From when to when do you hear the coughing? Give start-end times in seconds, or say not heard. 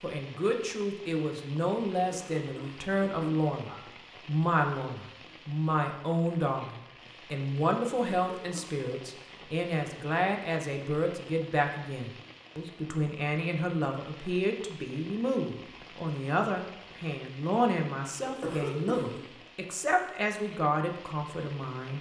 1.9-3.8, 8.1-8.8, 18.2-19.2.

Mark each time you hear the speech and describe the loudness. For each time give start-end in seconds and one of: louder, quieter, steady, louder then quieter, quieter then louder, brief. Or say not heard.
0.0-21.9 steady.